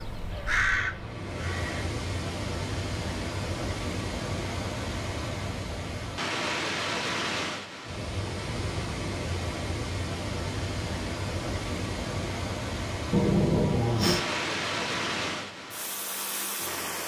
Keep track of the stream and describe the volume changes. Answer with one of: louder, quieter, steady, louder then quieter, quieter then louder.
steady.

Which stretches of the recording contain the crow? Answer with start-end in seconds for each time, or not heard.
0.0-1.8.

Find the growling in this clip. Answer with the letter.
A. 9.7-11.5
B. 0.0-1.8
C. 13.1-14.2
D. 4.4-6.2
C.